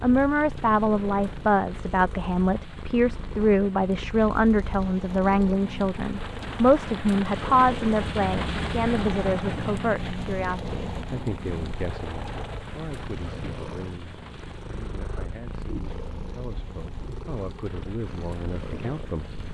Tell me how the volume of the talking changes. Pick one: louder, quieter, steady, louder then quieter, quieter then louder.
quieter.